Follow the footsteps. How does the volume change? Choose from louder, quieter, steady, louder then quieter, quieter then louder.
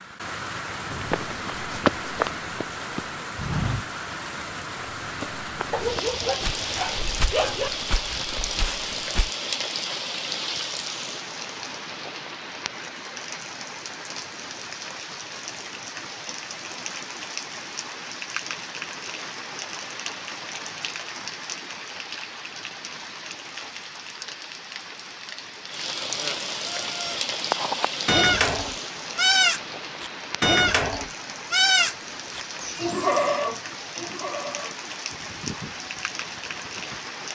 quieter.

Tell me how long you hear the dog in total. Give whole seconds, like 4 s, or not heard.
2 s.